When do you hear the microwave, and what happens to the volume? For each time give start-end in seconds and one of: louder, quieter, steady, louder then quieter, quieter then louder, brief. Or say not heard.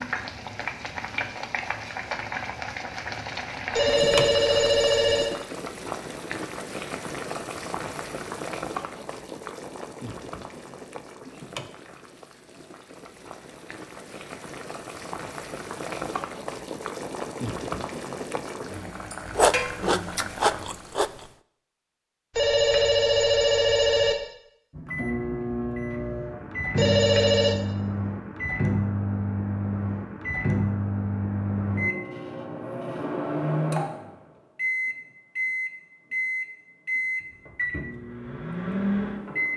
24.8-39.5 steady.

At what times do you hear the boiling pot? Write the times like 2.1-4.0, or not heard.
0.0-20.9.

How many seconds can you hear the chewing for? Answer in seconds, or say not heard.
2 s.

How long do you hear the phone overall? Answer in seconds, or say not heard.
4 s.